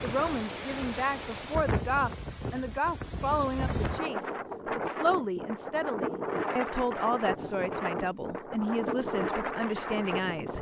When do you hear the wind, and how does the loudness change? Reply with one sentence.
You can hear the wind from 0.0 to 10.5 s, at a steady volume.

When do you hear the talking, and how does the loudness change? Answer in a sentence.
The talking can be heard from 0.0 to 10.5 s, at a steady volume.